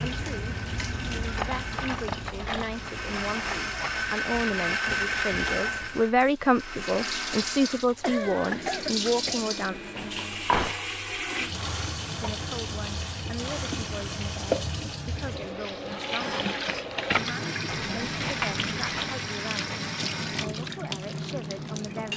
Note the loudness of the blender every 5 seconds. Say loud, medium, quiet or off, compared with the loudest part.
loud, loud, medium, off, off.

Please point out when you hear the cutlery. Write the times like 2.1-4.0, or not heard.
1.4-3.9, 9.9-10.9, 17.6-19.2.